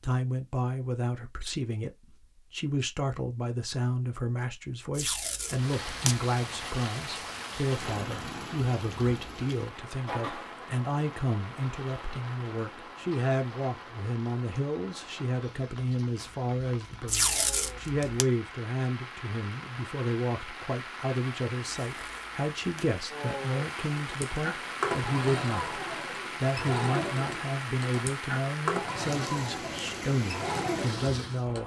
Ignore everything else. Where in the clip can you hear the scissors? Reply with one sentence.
The scissors can't be heard in this clip.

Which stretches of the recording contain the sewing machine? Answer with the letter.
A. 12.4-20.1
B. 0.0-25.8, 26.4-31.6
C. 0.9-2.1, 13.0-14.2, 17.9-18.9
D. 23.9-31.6
D.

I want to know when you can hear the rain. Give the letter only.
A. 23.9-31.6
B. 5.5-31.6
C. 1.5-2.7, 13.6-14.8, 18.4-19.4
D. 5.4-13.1
B.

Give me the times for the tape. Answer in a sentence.
The tape can be heard from 5.0 to 6.2 s, from 17.1 to 18.2 s and from 21.9 to 22.9 s.